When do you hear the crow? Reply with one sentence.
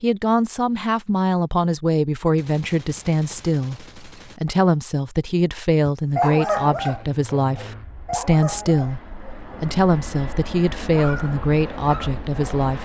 The crow can't be heard in this clip.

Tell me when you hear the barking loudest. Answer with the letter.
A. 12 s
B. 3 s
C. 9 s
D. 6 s
D.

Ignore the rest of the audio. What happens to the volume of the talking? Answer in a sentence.
The loudness of the talking stays about the same.